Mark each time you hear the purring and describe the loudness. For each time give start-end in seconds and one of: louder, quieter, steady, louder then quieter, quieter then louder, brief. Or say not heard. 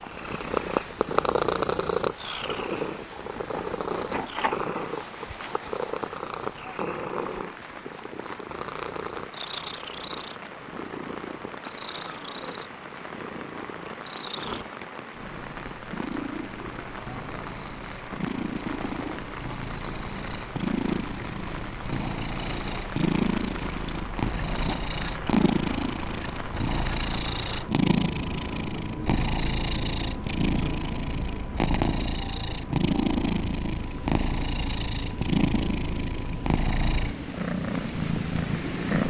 0.0-39.0 quieter then louder.